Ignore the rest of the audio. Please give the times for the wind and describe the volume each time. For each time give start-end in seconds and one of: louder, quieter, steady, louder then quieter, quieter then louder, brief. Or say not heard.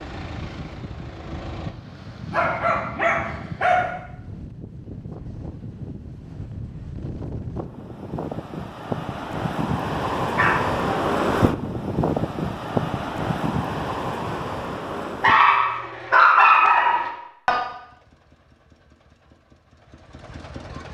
0.0-15.5 louder.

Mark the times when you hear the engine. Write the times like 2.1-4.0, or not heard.
0.0-1.8, 17.6-20.8.